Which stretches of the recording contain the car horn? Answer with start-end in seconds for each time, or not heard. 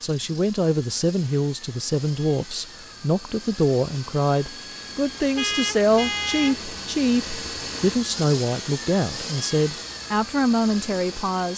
5.3-6.7.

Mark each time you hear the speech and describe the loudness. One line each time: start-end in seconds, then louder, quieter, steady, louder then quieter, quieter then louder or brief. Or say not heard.
0.0-11.5 steady.